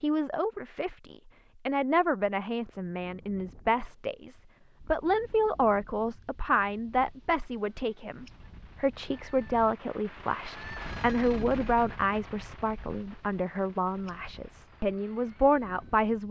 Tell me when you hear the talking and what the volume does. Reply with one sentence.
The talking can be heard from 0.0 to 16.2 s, at a steady volume.